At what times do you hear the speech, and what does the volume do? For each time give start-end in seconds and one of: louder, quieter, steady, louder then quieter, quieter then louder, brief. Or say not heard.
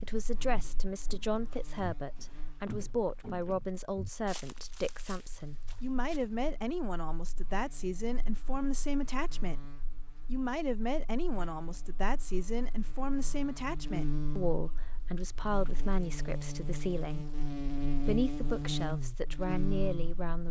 0.0-20.4 steady.